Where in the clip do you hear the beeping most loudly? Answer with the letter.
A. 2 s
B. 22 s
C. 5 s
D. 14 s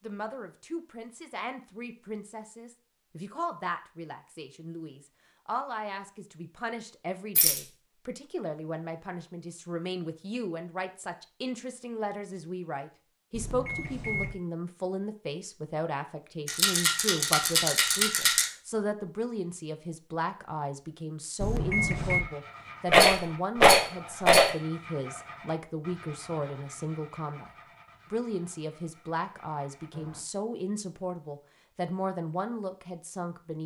B.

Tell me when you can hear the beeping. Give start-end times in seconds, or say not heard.
13.3-14.3, 21.4-22.2.